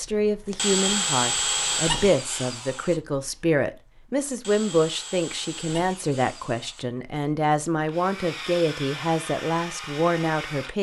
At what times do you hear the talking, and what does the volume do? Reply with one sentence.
You can hear the talking from 0.0 to 10.7 s, at a steady volume.